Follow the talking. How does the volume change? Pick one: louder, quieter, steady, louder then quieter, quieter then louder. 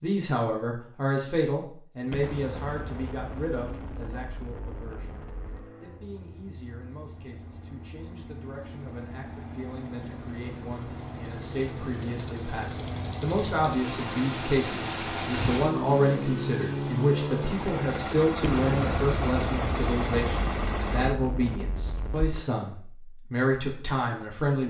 quieter then louder.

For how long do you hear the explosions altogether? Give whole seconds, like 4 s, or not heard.
8 s.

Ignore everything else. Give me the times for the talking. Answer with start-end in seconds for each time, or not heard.
0.0-5.2, 5.8-24.6.